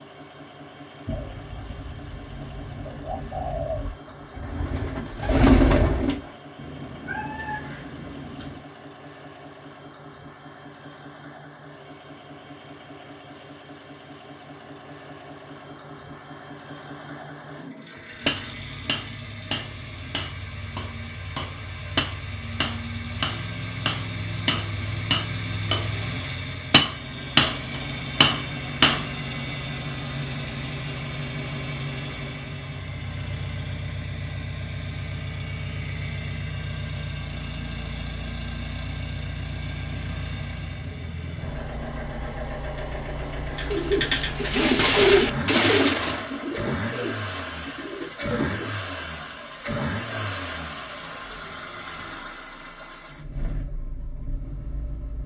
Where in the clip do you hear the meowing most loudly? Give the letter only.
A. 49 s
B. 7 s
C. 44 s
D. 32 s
B.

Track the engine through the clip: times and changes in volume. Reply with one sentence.
The engine can be heard from 0.0 to 55.2 s, getting louder.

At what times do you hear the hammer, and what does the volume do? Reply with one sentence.
You can hear the hammer from 18.2 to 29.1 s, getting louder.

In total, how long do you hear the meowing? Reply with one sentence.
The meowing can be heard for 2 seconds in total.